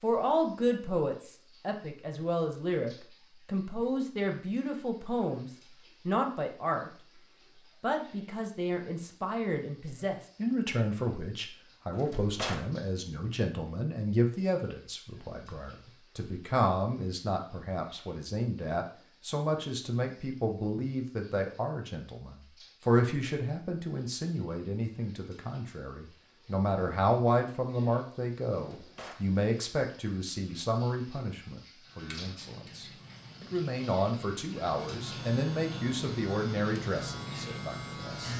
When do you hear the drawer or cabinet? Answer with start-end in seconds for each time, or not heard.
11.9-12.7, 28.6-29.3.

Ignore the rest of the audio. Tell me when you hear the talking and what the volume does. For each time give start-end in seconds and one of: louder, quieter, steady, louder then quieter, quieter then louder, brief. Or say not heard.
0.0-6.9 steady
7.8-38.3 steady.